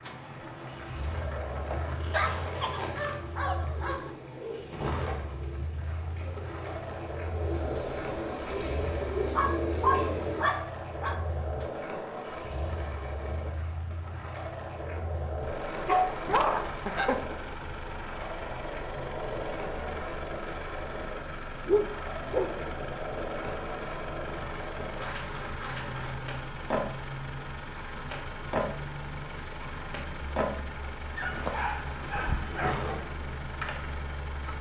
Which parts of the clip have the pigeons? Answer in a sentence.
You can hear the pigeons from 3.6 to 10.5 s.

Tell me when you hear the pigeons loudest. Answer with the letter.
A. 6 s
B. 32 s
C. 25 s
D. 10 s
D.